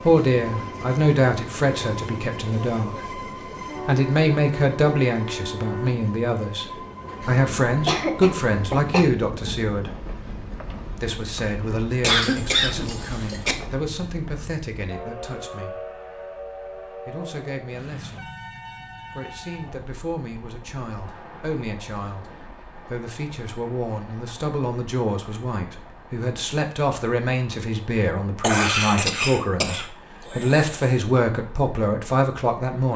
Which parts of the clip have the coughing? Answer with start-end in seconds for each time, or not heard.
7.7-9.1, 12.0-13.6, 28.4-30.7.